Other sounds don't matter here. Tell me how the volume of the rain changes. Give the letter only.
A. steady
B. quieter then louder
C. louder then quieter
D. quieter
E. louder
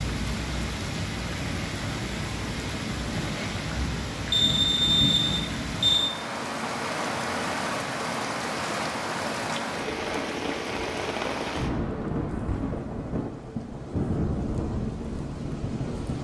A.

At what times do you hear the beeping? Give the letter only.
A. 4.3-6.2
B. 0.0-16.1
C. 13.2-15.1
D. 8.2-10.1
A.